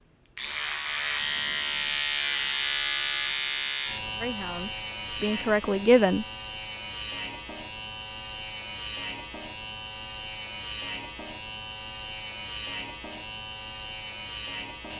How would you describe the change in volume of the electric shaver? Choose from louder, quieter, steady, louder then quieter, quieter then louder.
quieter.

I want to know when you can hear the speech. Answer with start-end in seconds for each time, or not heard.
4.2-6.2.